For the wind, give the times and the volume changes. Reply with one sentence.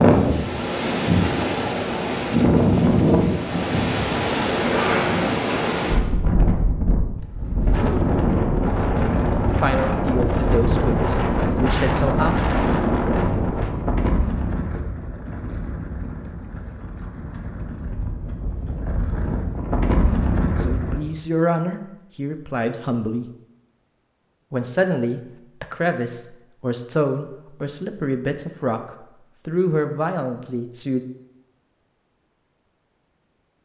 The wind can be heard from 0.0 to 21.0 s, getting quieter.